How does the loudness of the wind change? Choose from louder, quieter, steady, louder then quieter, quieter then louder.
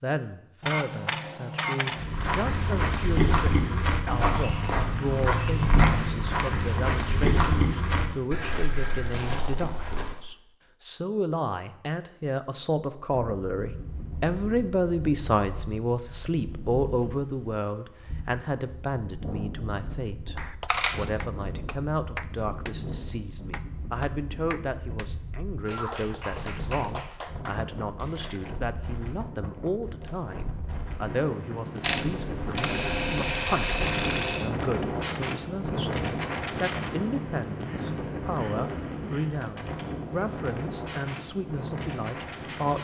louder.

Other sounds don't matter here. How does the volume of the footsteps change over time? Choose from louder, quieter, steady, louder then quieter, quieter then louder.
quieter.